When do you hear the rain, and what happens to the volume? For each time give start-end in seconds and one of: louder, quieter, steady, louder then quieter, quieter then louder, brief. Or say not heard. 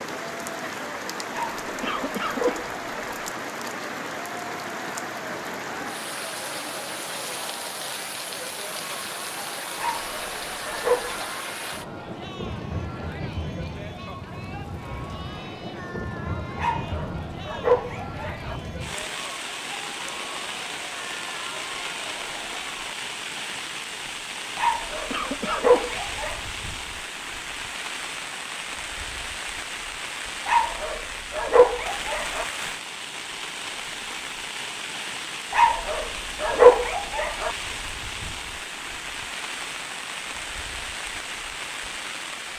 0.0-42.5 steady.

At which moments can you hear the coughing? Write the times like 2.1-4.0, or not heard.
1.8-2.8, 25.1-26.0.